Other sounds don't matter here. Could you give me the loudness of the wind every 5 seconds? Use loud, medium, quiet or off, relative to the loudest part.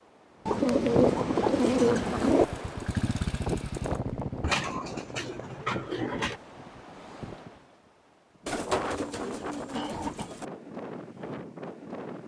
loud, medium, medium.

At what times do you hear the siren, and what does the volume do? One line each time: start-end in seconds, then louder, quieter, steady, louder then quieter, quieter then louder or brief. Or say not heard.
not heard.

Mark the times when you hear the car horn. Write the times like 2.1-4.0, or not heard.
not heard.